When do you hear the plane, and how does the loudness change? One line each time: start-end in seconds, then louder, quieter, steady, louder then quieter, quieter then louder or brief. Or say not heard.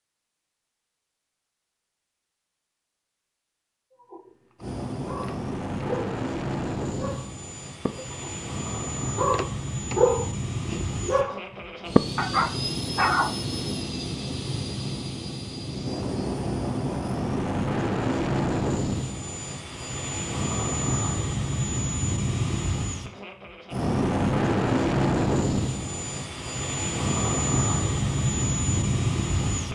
4.5-29.7 louder.